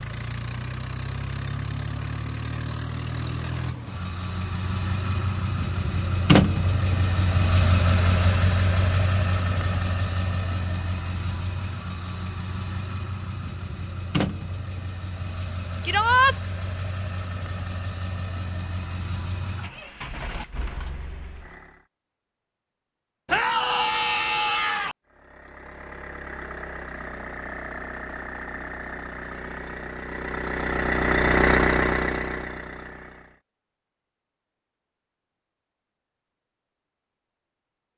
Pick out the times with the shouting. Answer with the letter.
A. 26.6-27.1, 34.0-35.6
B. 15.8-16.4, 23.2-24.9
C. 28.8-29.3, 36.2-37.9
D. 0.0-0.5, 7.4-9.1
B.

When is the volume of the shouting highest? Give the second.
16 s.